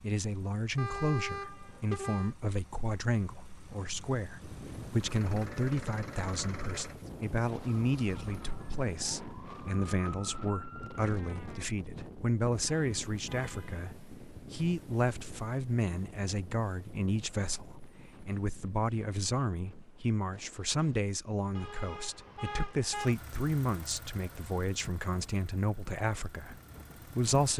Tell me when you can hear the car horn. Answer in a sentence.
The car horn can be heard from 0.8 to 2.4 s, from 12.7 to 13.8 s and from 21.6 to 23.1 s.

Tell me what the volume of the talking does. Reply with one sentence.
The loudness of the talking stays about the same.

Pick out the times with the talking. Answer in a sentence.
You can hear the talking from 0.0 to 27.5 s.